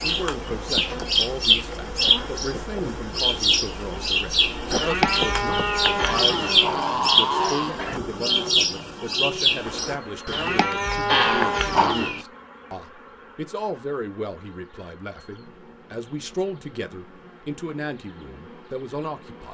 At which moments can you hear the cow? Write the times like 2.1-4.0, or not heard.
4.7-6.7, 10.2-12.2.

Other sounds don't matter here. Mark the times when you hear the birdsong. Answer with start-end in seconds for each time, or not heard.
0.0-9.9.